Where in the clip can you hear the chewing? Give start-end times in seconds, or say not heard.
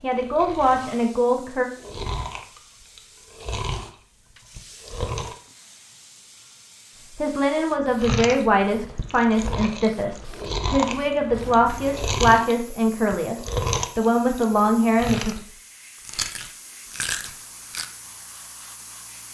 0.1-5.3, 8.0-17.9.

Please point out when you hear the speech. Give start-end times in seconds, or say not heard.
0.0-1.6, 7.2-15.4.